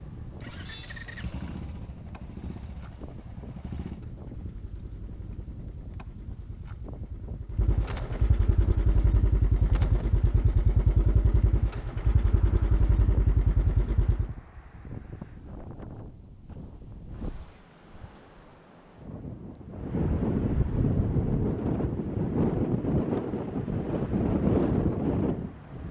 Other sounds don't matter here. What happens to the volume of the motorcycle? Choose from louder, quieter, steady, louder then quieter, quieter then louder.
louder.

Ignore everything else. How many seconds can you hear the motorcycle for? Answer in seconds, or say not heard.
14 s.